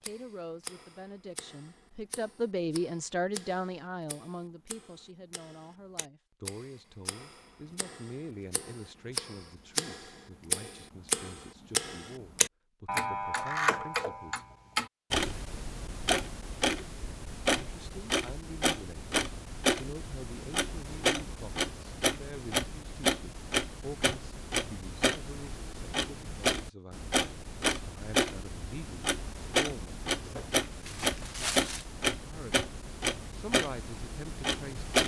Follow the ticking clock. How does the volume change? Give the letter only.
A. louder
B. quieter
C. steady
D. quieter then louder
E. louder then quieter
A.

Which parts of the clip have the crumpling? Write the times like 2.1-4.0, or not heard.
30.2-31.9.